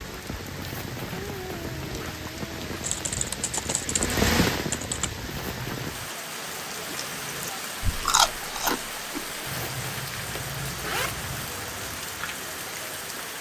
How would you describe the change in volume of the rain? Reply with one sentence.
The volume of the rain goes up, then down.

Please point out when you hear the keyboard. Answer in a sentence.
The keyboard can be heard from 2.8 to 5.1 s.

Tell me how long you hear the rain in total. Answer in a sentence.
You can hear the rain for 13 seconds altogether.